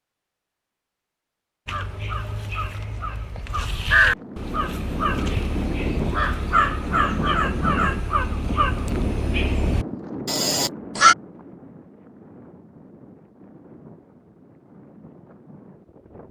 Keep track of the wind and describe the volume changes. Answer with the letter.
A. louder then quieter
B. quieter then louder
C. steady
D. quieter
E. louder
D.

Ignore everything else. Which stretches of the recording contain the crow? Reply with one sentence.
You can hear the crow from 1.6 to 11.2 s.